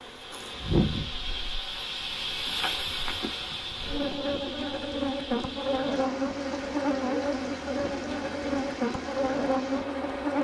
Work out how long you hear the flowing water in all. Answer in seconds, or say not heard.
10 s.